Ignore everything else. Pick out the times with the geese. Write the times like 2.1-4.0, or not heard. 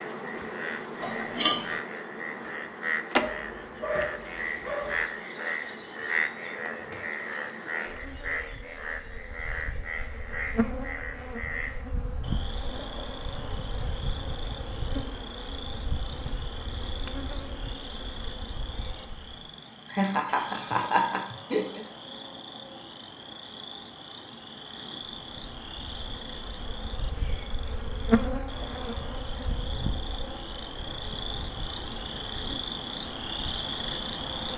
not heard.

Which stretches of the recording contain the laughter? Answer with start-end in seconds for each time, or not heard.
1.0-1.8, 19.9-21.8.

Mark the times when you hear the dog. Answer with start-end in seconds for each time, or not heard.
3.1-5.0.